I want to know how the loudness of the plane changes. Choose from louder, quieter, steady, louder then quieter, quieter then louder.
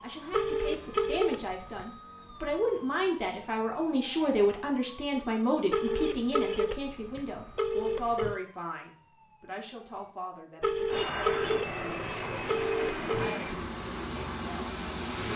steady.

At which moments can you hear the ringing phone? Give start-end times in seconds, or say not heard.
0.3-1.9, 5.7-8.4, 10.6-13.4.